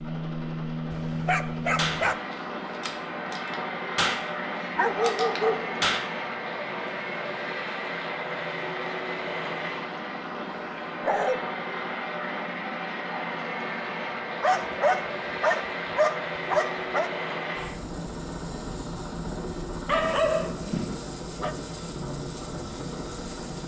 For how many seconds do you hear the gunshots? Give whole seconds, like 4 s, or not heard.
4 s.